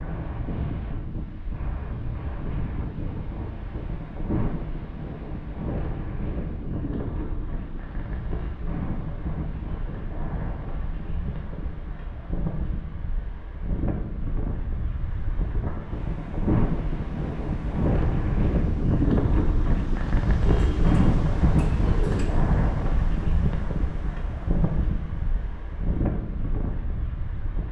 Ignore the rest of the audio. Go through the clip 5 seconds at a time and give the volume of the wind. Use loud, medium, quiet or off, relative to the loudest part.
medium, medium, medium, loud, loud, medium.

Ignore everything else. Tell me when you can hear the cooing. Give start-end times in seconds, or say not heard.
20.4-22.4.